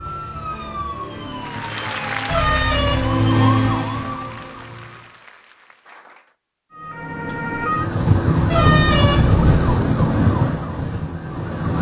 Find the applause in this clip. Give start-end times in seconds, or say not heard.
1.4-6.3.